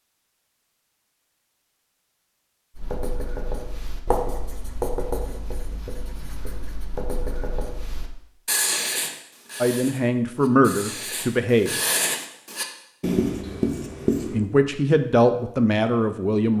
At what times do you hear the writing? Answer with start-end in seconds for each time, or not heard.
2.8-14.4.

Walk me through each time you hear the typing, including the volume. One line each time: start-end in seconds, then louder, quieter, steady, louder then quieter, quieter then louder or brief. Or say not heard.
not heard.